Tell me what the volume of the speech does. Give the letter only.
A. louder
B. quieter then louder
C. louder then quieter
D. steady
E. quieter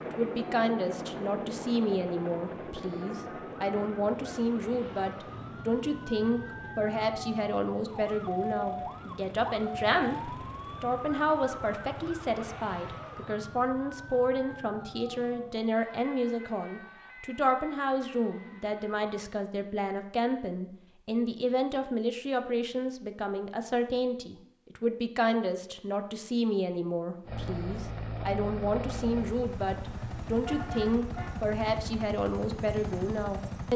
D.